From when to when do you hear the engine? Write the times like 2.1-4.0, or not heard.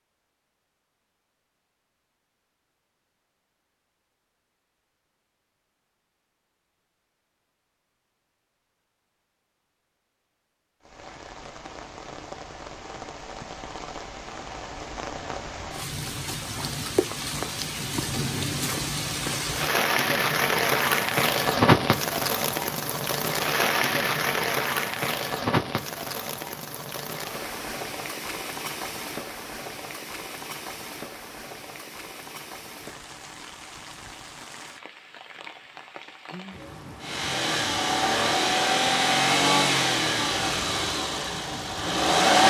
37.0-42.4.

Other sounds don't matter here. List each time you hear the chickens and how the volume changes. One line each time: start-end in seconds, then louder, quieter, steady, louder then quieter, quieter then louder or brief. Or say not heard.
not heard.